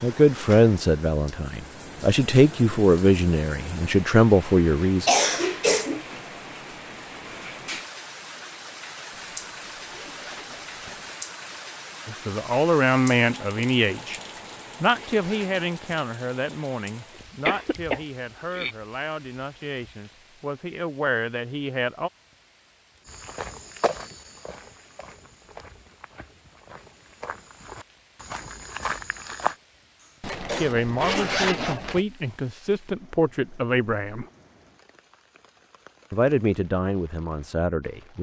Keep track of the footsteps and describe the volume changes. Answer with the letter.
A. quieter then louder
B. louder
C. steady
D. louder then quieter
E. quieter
A.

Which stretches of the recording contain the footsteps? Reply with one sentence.
You can hear the footsteps from 23.1 to 29.6 s.